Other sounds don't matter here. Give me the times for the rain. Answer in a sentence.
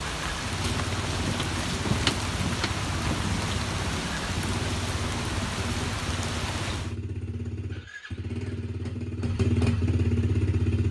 The rain can be heard from 0.0 to 7.0 s.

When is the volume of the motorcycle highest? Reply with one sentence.
The volume of the motorcycle peaks at 10 seconds.